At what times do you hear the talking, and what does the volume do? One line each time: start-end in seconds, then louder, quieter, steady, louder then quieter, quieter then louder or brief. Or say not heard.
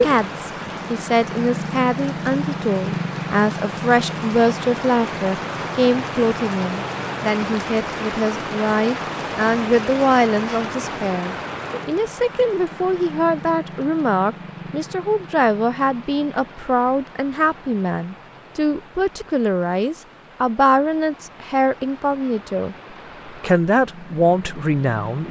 0.0-25.2 steady.